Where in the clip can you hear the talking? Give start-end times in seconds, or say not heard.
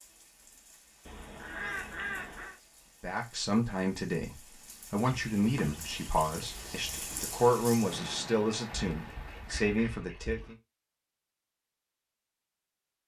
3.0-10.6.